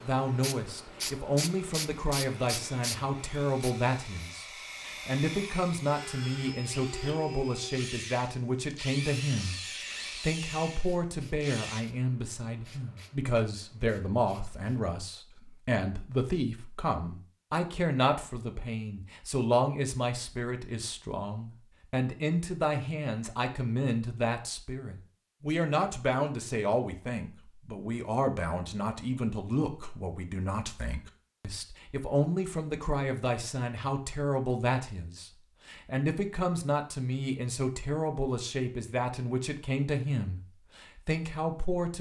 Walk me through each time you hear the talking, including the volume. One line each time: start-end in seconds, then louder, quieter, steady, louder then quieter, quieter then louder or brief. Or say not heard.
0.0-41.9 steady.